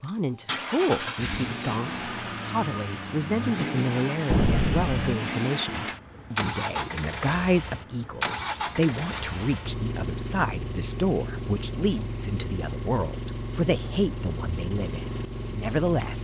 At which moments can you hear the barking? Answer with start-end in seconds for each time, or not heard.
not heard.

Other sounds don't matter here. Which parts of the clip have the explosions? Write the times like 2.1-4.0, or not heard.
4.3-5.1.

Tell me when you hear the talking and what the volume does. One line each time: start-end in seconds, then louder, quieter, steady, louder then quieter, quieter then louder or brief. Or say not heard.
0.0-16.1 steady.